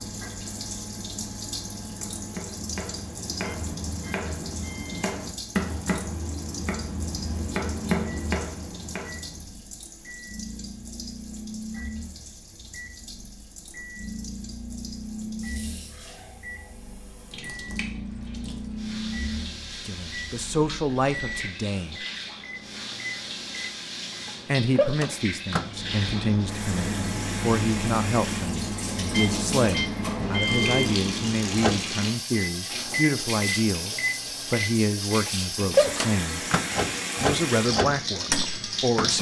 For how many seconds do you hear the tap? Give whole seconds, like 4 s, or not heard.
39 s.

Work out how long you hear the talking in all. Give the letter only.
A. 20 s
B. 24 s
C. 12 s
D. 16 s
D.